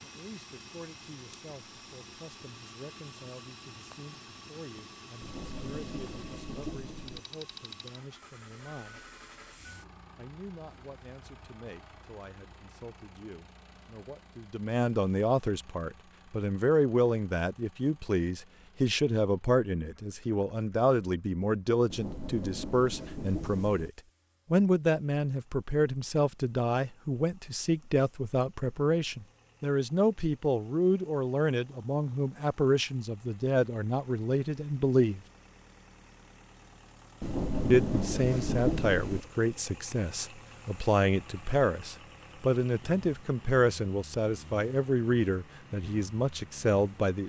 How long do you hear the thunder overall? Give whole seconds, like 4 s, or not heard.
6 s.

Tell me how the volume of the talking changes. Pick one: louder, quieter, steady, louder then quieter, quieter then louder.
louder.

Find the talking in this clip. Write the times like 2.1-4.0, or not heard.
0.0-9.1, 10.2-35.2, 37.7-47.2.